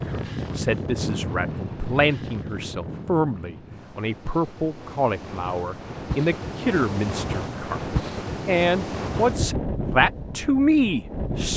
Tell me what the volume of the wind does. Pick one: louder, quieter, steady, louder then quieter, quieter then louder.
quieter then louder.